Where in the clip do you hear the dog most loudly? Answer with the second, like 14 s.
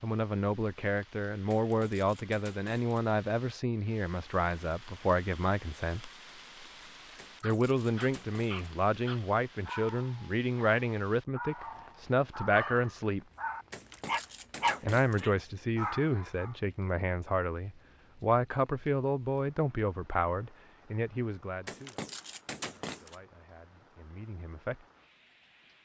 15 s.